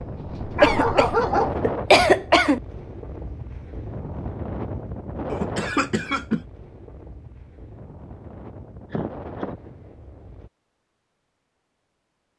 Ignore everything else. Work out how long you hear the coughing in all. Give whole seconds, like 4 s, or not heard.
4 s.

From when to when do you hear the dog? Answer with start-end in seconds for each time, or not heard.
0.2-1.6.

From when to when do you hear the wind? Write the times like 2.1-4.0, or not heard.
0.0-10.5.